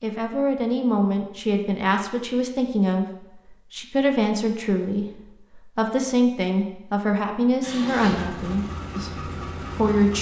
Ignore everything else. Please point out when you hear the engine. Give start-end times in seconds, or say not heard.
7.6-10.1.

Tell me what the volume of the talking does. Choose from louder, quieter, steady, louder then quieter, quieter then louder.
steady.